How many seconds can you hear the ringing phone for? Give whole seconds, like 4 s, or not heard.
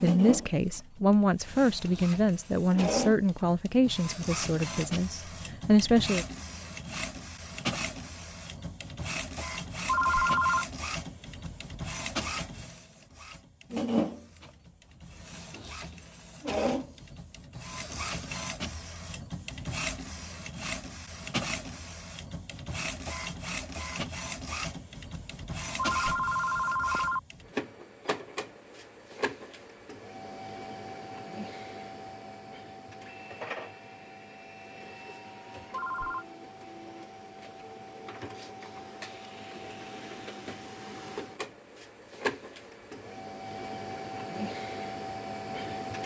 3 s.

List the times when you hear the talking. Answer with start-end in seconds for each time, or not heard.
0.0-6.2.